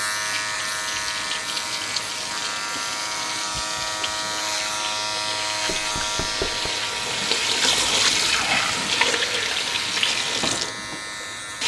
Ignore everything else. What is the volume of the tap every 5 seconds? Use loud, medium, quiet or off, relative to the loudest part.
medium, loud, loud.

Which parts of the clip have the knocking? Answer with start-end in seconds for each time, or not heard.
5.7-6.7.